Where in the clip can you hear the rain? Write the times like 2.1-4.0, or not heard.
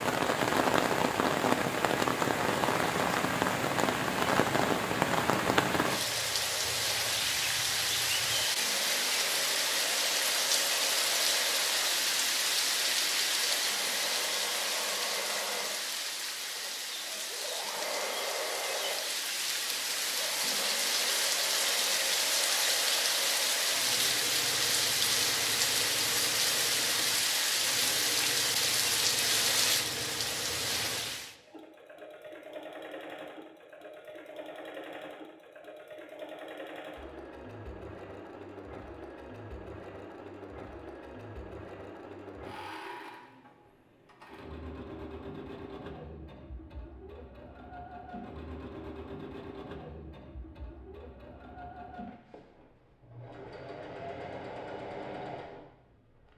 0.0-31.4.